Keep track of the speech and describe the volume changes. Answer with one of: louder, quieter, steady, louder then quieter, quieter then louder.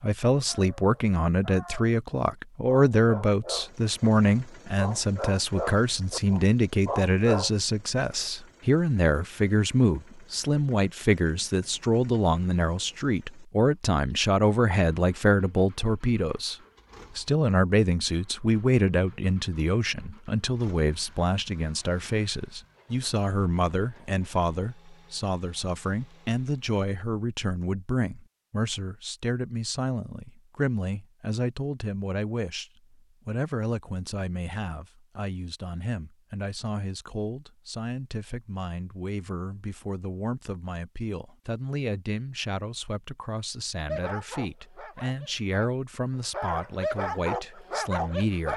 quieter.